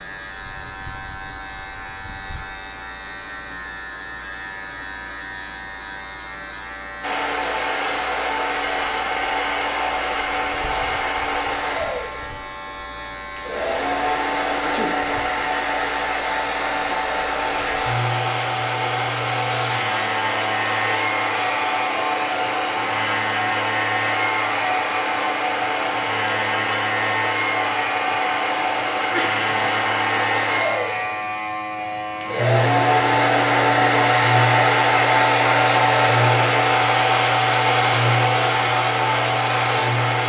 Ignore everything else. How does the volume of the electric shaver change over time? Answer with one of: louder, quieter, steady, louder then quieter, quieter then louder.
louder.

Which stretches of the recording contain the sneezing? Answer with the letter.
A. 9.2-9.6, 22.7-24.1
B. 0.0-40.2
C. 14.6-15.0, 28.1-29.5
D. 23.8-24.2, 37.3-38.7
C.